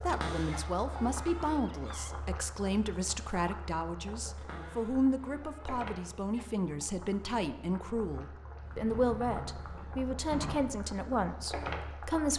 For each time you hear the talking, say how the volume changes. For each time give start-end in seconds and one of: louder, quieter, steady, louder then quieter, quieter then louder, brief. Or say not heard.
0.0-12.3 steady.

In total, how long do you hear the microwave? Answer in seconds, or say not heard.
not heard.